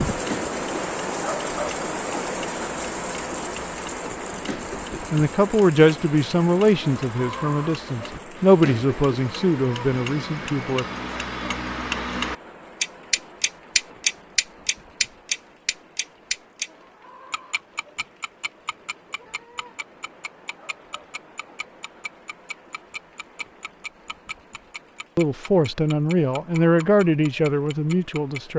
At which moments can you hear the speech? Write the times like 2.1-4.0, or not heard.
5.1-10.8, 25.1-28.5.